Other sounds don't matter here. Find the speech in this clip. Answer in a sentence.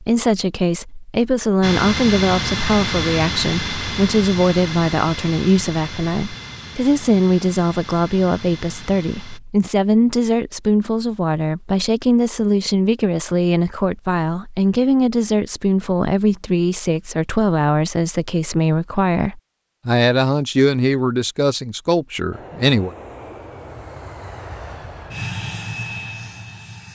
The speech can be heard from 0.0 to 22.9 s.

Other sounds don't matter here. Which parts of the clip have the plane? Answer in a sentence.
The plane can be heard from 1.6 to 9.4 s and from 22.3 to 26.9 s.